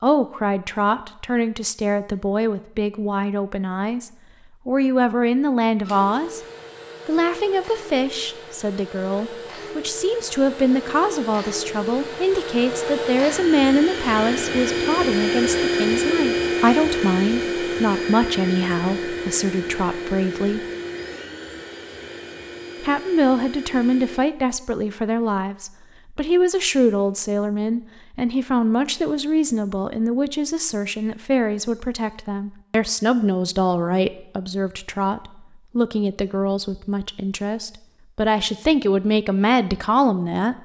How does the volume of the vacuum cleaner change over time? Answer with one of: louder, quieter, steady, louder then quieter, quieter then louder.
louder then quieter.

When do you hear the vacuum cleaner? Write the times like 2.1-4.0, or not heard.
5.8-24.2.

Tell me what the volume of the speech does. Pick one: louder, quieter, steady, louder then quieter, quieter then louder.
steady.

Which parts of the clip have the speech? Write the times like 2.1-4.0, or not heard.
0.0-6.4, 7.0-20.6, 22.8-40.6.